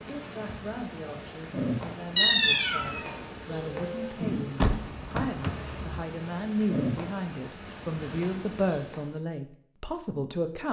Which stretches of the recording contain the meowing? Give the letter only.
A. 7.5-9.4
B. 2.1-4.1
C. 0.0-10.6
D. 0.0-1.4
B.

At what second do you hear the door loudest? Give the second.
5 s.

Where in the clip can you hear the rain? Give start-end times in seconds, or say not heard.
0.0-9.1.